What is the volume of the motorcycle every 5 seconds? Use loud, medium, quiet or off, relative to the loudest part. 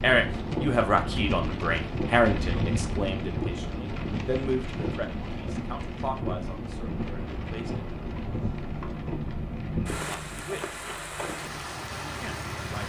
off, loud, loud.